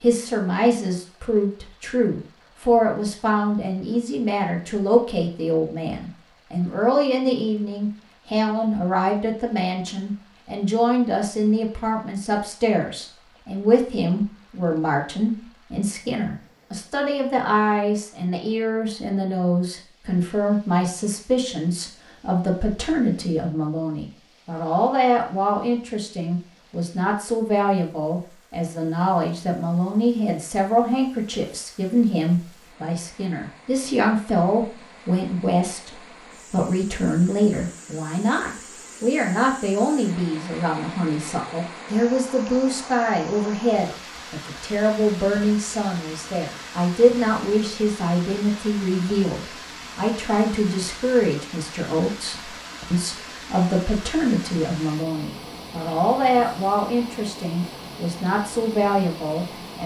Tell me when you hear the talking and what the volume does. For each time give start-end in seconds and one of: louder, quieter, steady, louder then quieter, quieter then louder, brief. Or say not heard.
0.0-59.8 steady.